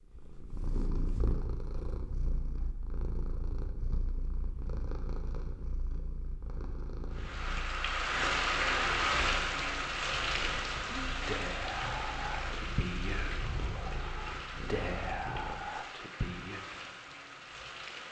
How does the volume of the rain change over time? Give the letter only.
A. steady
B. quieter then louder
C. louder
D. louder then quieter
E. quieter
E.